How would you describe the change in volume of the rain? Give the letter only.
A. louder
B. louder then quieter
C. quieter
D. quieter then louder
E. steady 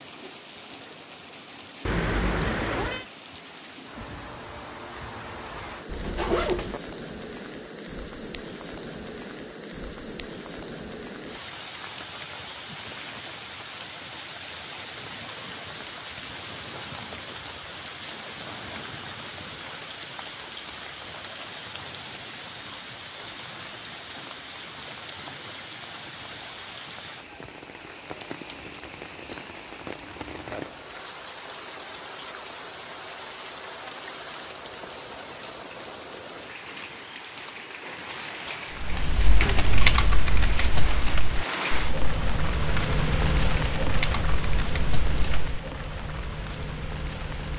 A.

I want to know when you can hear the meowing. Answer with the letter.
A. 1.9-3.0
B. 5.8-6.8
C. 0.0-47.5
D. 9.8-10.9
A.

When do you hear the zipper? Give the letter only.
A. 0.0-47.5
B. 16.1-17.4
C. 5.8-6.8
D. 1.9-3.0
C.